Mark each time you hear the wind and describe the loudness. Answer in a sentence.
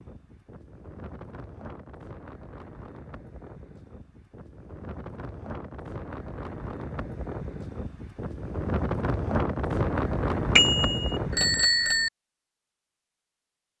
The wind can be heard from 0.0 to 11.7 s, getting louder.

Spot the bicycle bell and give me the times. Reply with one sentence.
The bicycle bell can be heard from 10.6 to 12.1 s.